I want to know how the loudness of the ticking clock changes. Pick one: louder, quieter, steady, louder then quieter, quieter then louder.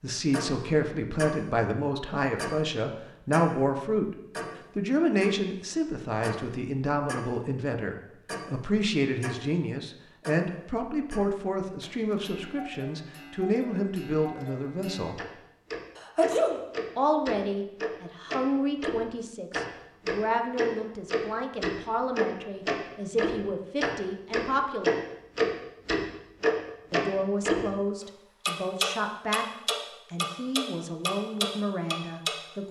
quieter then louder.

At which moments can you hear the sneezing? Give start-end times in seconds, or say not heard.
15.9-16.6.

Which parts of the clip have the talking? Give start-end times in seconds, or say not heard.
0.0-4.2, 4.8-15.2, 16.9-24.9, 26.9-29.4, 30.1-32.6.